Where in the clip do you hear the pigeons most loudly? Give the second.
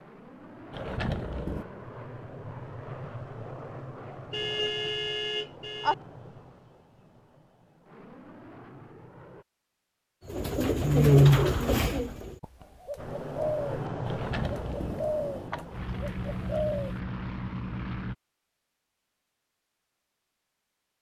11 s.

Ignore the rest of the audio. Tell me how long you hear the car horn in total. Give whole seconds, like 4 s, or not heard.
2 s.